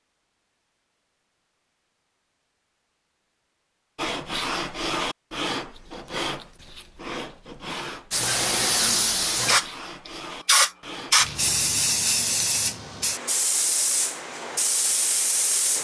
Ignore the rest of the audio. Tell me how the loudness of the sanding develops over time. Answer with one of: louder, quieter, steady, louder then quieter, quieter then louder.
quieter.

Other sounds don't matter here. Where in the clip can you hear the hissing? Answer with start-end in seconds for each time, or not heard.
8.1-15.7.